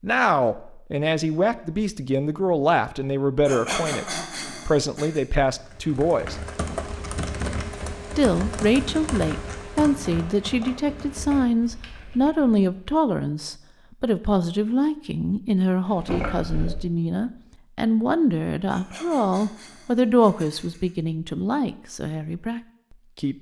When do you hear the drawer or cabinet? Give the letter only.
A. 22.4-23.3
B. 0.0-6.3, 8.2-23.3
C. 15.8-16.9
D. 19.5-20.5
C.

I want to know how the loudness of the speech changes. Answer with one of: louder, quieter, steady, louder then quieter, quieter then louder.
steady.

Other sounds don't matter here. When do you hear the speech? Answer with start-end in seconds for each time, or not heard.
0.0-6.3, 8.2-23.3.